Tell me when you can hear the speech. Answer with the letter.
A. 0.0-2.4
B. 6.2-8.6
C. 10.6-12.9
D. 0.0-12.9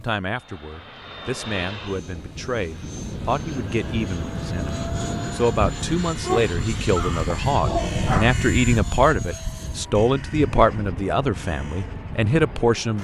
D.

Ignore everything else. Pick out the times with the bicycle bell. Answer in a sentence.
You can't hear the bicycle bell here.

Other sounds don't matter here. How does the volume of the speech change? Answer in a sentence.
The loudness of the speech goes up.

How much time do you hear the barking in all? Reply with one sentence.
You can hear the barking for 2 seconds altogether.